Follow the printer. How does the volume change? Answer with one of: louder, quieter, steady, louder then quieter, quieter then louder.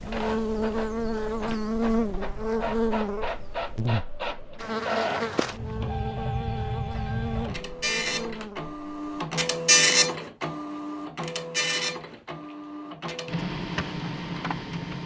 louder then quieter.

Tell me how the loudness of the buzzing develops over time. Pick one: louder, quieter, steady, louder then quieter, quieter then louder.
quieter.